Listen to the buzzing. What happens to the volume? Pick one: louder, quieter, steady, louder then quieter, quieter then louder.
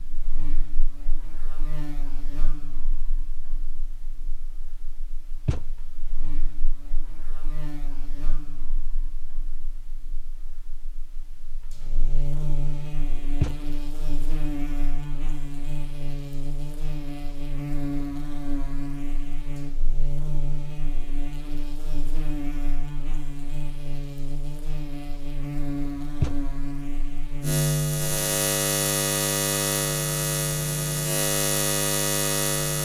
louder.